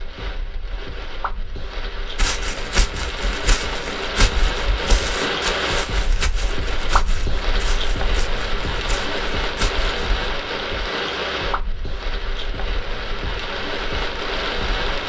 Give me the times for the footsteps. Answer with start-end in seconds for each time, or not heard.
2.1-10.1.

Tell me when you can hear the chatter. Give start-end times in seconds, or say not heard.
not heard.